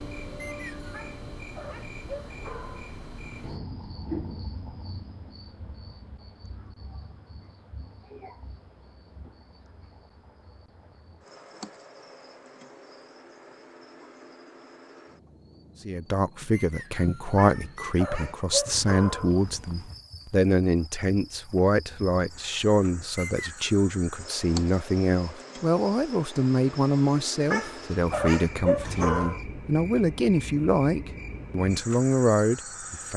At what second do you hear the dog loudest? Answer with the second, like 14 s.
29 s.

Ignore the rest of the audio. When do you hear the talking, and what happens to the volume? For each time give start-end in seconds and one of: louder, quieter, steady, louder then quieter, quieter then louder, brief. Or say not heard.
15.8-33.1 steady.